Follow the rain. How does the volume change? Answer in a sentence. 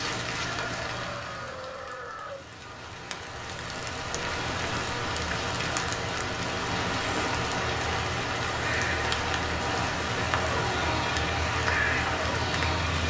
The loudness of the rain goes up.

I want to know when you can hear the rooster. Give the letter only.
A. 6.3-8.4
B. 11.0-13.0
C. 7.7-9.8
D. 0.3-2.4
D.